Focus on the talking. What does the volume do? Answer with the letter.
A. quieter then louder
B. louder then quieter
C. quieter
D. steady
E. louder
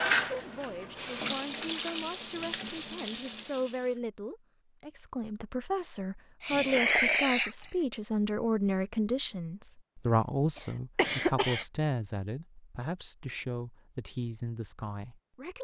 B.